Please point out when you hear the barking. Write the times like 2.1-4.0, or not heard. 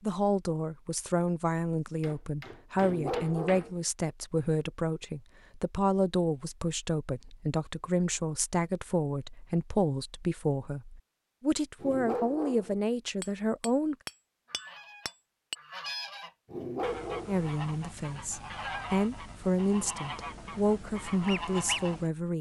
2.8-3.8, 11.8-12.8, 16.5-17.4.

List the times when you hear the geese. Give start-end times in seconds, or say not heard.
14.4-22.1.